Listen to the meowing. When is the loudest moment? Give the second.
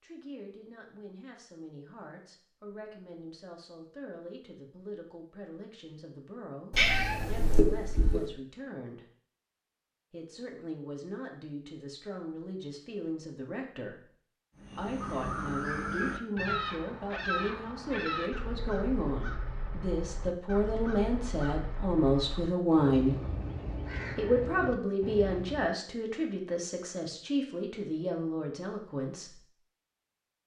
7 s.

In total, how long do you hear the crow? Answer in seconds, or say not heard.
11 s.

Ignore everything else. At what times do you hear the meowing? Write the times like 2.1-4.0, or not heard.
6.7-8.3.